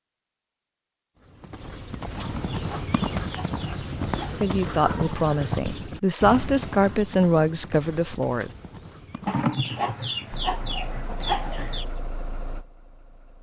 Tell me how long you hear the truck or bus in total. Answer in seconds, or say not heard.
3 s.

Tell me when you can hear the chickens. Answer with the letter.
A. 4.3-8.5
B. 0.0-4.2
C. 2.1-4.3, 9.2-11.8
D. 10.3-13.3
C.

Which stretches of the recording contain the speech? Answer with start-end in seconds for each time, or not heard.
4.3-8.5.